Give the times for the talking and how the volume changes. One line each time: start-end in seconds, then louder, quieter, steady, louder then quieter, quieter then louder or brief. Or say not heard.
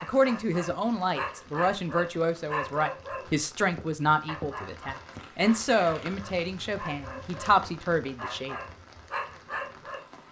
0.0-8.6 steady.